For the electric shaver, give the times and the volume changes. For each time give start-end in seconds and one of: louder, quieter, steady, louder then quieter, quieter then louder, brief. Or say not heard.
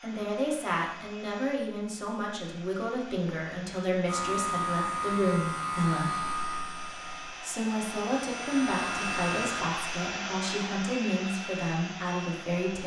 4.0-9.7 quieter then louder.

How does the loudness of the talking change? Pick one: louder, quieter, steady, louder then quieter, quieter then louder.
steady.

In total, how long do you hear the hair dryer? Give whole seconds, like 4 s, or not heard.
13 s.